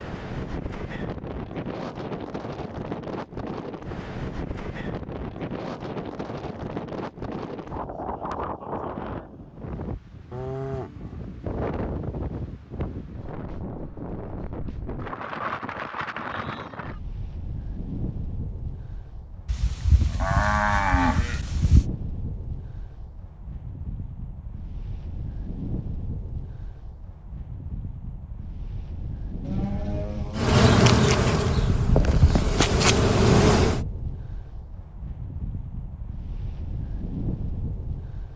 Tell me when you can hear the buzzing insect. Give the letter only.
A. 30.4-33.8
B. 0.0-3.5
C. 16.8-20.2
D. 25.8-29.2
A.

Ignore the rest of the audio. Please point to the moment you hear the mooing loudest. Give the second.
21 s.